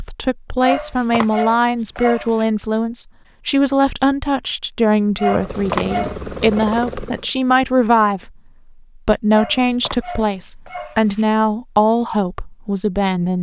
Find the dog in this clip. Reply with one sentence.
You can hear the dog from 0.6 to 2.5 s, from 5.2 to 6.7 s and from 9.3 to 11.2 s.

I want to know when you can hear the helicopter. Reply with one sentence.
You can hear the helicopter from 5.2 to 7.3 s.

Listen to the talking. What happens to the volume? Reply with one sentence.
The volume of the talking stays about the same.